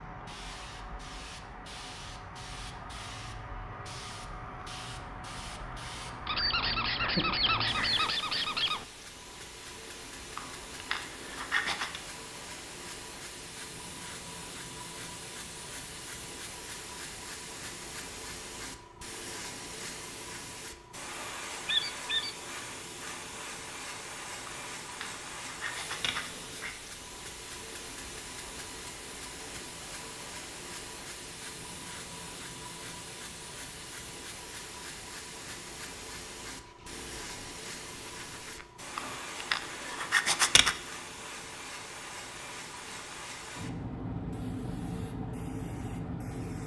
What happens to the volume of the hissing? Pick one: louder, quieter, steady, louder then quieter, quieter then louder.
steady.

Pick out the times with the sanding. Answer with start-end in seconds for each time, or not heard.
10.3-12.0, 24.4-26.8, 39.0-40.8.